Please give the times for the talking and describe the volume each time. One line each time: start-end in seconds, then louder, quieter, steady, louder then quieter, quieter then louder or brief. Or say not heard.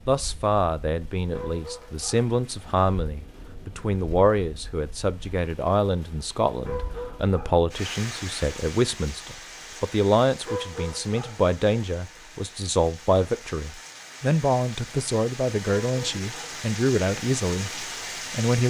0.1-18.6 steady.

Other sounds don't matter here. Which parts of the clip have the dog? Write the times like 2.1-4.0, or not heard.
1.3-2.3, 6.6-7.6, 10.4-11.4, 15.8-16.6.